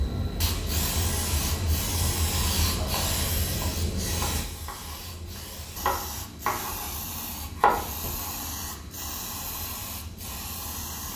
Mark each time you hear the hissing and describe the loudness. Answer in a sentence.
The hissing can be heard from 0.0 to 11.1 s, getting quieter.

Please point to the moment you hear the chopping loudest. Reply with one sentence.
The loudest moment of the chopping is at 8 seconds.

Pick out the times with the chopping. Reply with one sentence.
The chopping can be heard from 2.8 to 6.9 s and from 7.5 to 8.3 s.